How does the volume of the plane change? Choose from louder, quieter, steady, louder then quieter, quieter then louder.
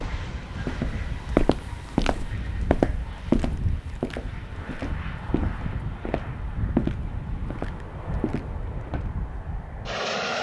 steady.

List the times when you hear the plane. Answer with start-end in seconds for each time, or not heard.
0.0-10.3.